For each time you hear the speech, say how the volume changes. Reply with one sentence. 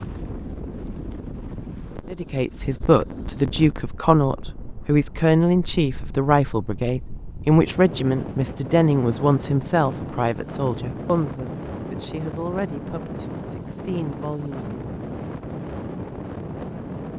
The speech can be heard from 2.1 to 14.8 s, getting quieter.